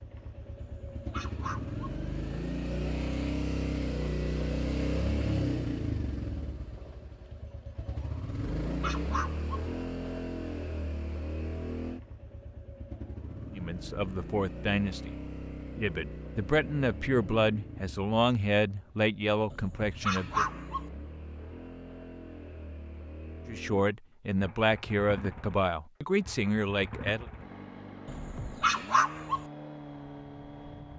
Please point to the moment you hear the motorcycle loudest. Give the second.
5 s.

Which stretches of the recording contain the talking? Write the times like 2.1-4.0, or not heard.
13.5-15.1, 15.8-20.4, 23.4-27.2.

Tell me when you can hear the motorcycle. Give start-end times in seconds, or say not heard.
0.0-30.9.